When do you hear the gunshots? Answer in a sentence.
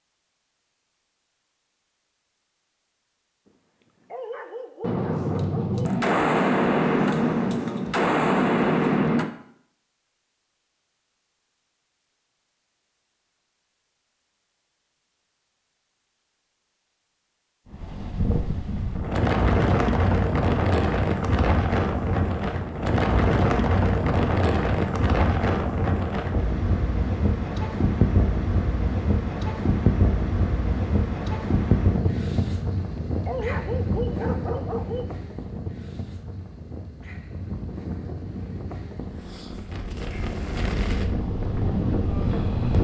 You can hear the gunshots from 4.8 to 9.3 s.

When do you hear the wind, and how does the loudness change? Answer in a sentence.
You can hear the wind from 17.7 to 42.7 s, getting quieter.